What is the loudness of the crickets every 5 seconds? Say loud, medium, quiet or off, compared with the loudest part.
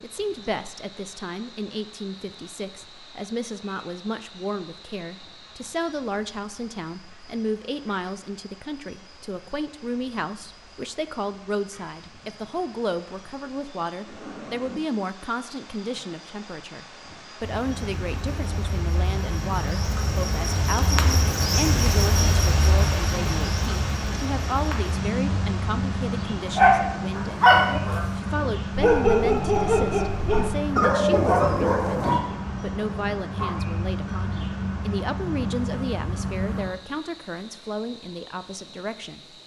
quiet, quiet, quiet, medium, loud, loud, loud, medium.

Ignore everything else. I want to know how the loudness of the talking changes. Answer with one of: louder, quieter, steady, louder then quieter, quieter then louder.
steady.